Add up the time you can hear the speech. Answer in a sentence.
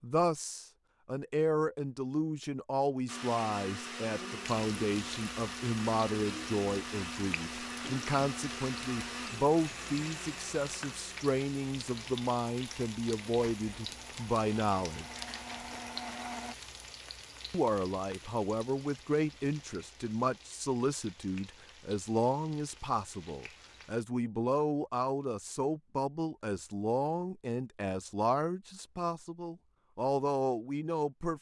The speech can be heard for 29 seconds in total.